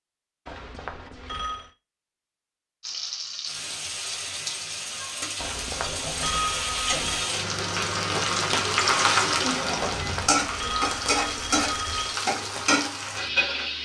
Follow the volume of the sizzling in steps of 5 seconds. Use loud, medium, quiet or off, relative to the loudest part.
medium, loud, loud.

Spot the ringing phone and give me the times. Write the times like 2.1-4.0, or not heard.
0.5-1.8, 5.3-7.3, 9.9-12.2.